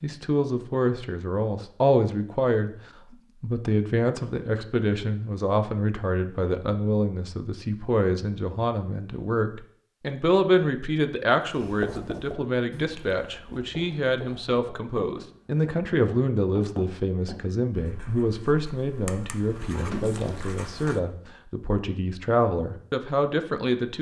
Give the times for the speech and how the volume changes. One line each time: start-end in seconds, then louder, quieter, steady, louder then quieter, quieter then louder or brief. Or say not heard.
0.0-2.7 brief
3.4-23.9 steady.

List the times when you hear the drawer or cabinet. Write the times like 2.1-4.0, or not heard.
19.4-20.6.